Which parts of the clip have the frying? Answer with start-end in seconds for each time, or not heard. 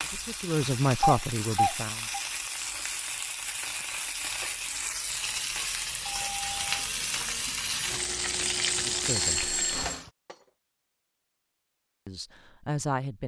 0.0-10.1.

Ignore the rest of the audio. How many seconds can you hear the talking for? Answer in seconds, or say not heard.
4 s.